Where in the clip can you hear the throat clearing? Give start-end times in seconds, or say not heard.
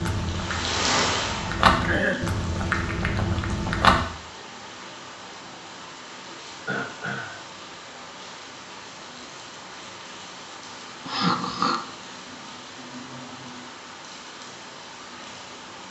1.9-2.3, 6.7-7.5, 11.1-11.8.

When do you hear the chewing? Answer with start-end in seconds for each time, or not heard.
0.0-4.0.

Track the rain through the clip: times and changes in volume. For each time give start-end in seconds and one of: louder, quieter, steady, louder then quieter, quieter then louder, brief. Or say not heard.
0.0-15.8 quieter.